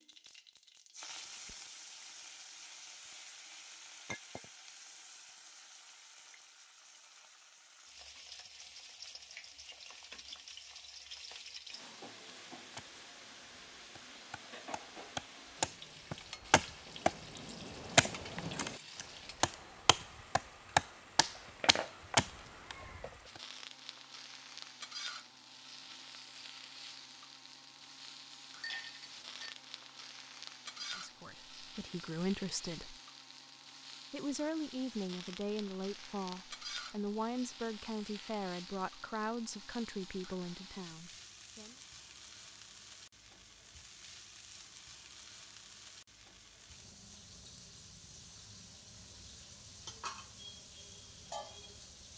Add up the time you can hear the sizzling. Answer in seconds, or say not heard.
52 s.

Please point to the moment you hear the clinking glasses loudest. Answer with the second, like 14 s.
29 s.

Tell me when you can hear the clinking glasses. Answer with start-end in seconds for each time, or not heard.
4.0-4.5, 28.6-29.6.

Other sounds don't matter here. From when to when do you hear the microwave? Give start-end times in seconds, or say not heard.
not heard.